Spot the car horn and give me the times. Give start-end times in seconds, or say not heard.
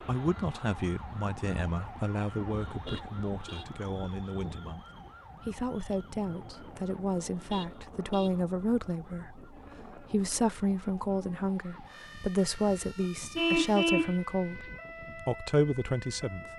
2.8-3.7, 7.4-8.3, 13.3-14.2.